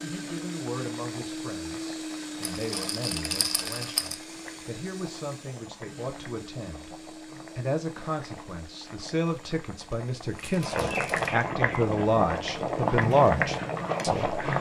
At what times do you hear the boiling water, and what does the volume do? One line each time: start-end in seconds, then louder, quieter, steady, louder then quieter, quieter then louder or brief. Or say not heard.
0.0-14.5 louder.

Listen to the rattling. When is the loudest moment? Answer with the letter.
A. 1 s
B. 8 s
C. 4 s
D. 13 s
C.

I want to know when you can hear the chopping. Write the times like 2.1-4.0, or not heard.
not heard.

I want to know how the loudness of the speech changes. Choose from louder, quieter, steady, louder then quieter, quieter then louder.
louder.